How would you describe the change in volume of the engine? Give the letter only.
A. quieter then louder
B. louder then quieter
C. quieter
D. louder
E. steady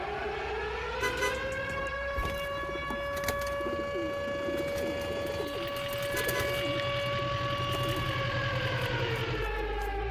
D.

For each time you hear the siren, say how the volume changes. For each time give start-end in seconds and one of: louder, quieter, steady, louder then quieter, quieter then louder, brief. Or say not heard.
0.0-10.0 steady.